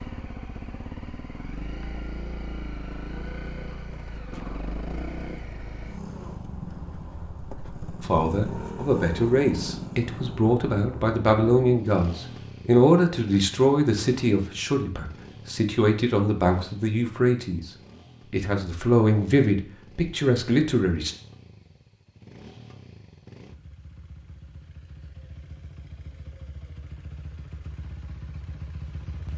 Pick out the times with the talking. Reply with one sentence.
The talking can be heard from 8.0 to 17.7 s and from 18.3 to 21.1 s.